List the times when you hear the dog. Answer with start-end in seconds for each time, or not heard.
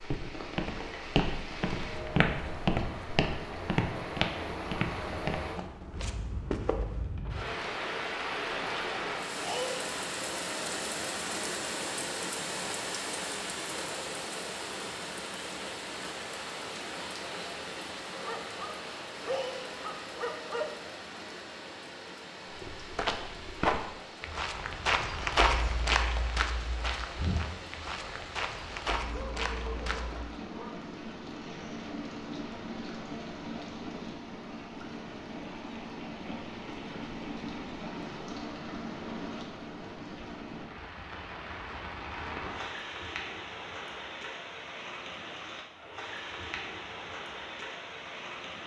18.2-20.9, 29.1-30.9.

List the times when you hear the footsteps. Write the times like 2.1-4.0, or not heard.
0.0-7.1, 22.5-30.4.